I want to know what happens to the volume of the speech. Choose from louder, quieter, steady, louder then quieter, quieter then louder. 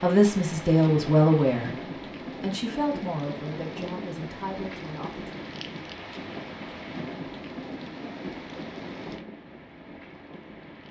quieter.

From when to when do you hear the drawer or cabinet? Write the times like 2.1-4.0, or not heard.
not heard.